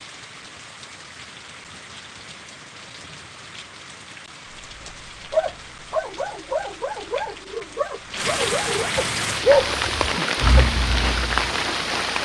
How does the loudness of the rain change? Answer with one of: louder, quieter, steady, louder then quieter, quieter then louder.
louder.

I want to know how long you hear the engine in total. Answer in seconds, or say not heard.
2 s.